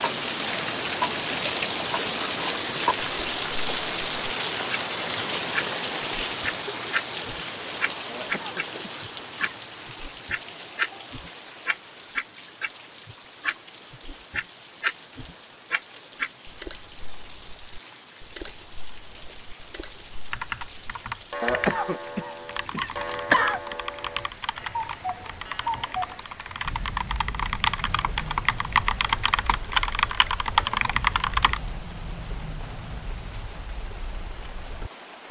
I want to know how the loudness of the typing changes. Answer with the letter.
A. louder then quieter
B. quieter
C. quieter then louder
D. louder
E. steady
D.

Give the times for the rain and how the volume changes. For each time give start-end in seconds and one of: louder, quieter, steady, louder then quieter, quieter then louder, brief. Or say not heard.
0.0-35.2 quieter.